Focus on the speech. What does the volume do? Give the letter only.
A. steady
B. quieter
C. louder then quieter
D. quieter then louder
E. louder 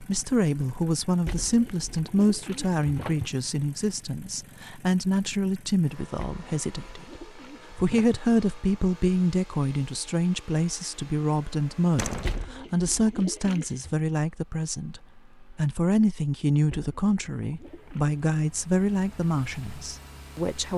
A.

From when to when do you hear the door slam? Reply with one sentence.
The door slam can be heard from 11.9 to 12.4 s.